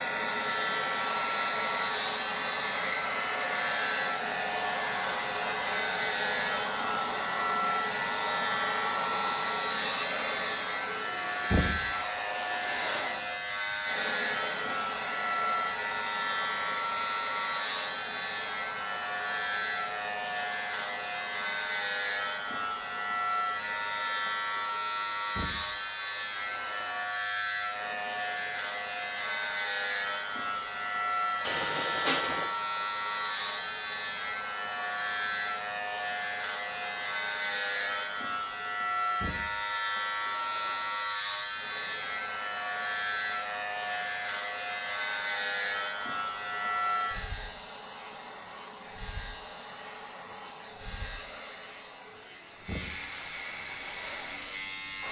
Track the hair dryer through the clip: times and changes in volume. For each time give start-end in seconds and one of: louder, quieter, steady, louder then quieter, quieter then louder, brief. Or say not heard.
0.0-55.0 quieter.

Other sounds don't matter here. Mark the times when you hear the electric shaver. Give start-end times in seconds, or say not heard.
0.0-55.0.